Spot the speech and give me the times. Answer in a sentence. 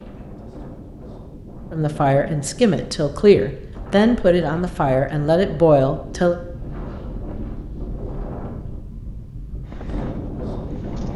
You can hear the speech from 1.7 to 6.3 s.